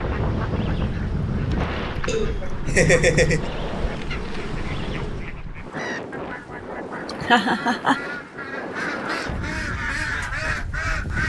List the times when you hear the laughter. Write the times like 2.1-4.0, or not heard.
2.0-3.5, 7.0-8.0.